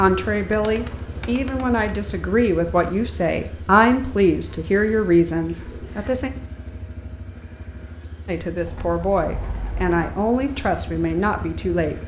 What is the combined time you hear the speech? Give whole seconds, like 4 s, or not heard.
10 s.